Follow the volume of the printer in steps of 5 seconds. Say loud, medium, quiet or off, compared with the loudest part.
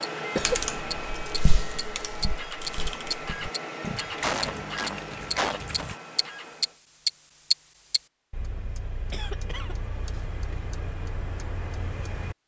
loud, medium, off.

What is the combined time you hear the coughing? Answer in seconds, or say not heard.
3 s.